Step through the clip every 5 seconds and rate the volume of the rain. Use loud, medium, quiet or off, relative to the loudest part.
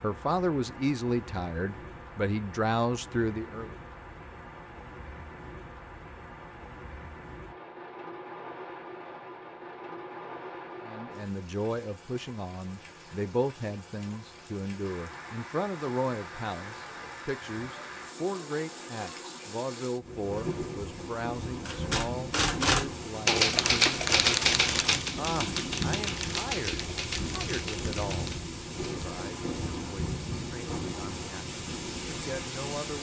medium, medium, medium, medium, loud, loud, loud.